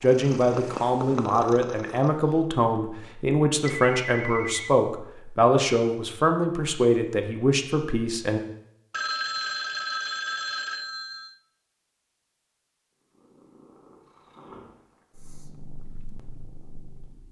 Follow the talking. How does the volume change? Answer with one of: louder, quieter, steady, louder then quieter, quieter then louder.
steady.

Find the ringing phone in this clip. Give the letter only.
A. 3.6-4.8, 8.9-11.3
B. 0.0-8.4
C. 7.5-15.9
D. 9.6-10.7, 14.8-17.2
A.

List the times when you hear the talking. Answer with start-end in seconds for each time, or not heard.
0.0-8.4.